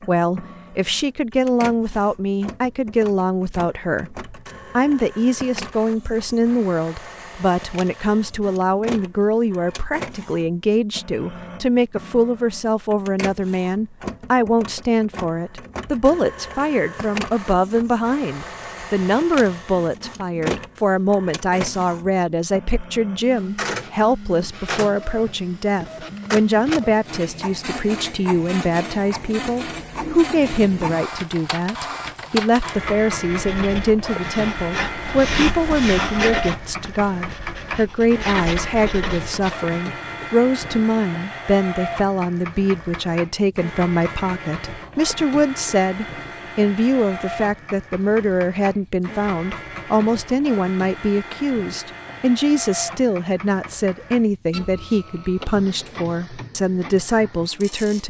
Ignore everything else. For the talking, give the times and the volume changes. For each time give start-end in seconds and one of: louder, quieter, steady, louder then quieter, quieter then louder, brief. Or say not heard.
0.1-58.0 steady.